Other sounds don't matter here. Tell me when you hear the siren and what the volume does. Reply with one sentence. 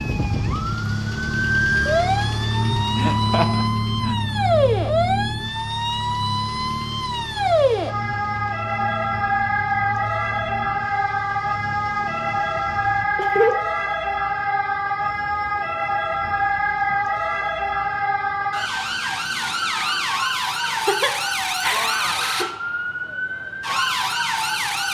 The siren can be heard from 0.0 to 24.9 s, at a steady volume.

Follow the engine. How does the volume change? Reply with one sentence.
The volume of the engine goes down.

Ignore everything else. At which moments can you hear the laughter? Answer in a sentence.
You can hear the laughter from 3.0 to 4.2 s, from 13.2 to 13.6 s and from 20.6 to 22.5 s.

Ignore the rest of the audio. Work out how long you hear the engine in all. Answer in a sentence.
The engine can be heard for 13 seconds in total.